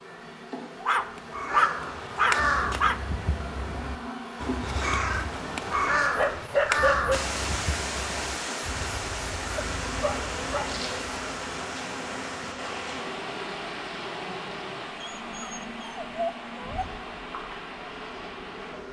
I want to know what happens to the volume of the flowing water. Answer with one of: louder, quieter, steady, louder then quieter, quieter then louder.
quieter.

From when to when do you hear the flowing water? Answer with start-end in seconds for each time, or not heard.
7.1-18.8.